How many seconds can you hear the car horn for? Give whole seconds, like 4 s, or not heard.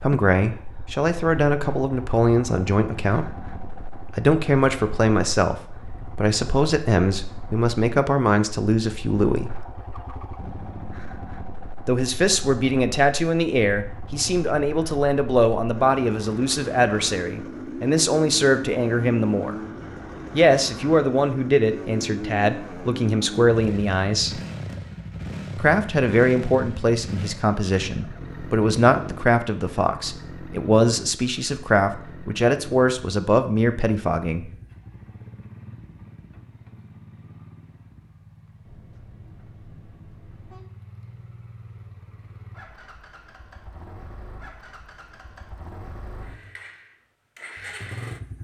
2 s.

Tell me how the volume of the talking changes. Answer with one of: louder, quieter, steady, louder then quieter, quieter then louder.
steady.